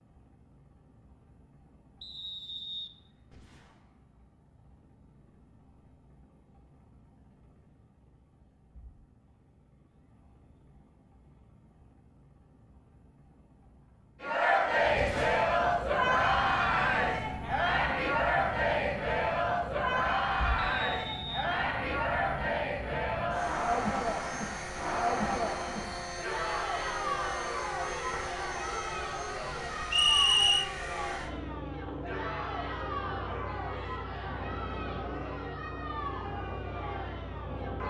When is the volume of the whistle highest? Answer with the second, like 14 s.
30 s.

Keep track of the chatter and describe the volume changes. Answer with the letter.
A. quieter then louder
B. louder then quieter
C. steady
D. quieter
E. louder
D.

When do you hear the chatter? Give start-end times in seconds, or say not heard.
14.2-37.8.